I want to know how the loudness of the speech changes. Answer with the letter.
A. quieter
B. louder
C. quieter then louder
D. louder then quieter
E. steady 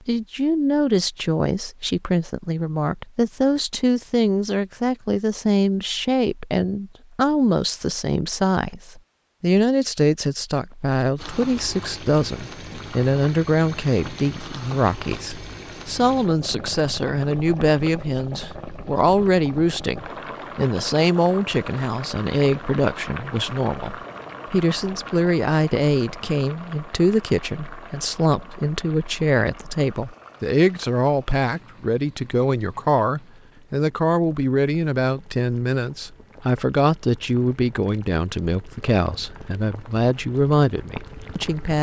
E.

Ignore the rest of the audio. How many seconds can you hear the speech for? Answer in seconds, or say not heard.
42 s.